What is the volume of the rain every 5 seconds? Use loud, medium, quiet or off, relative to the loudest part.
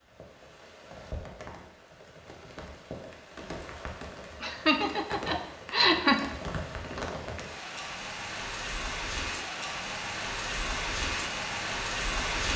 quiet, medium, loud.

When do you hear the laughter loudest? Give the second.
6 s.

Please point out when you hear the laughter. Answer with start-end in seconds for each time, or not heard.
4.4-6.2.